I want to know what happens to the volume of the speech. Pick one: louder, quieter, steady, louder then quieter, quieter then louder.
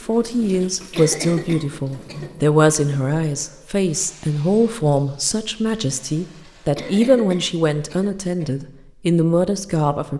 steady.